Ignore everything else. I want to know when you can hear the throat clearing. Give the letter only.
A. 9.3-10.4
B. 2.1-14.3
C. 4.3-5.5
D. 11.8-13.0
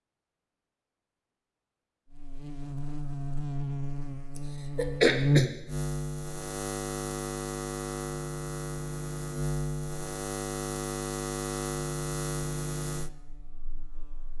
C.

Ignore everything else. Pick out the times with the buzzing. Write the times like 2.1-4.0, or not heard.
2.1-14.3.